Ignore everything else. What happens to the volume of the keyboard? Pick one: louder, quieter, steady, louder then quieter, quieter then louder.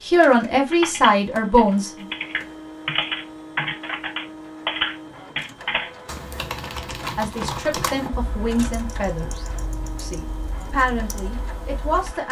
quieter.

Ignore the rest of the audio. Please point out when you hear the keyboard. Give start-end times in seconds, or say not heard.
0.7-12.2.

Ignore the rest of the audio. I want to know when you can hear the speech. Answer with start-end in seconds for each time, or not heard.
0.0-2.0, 7.2-12.2.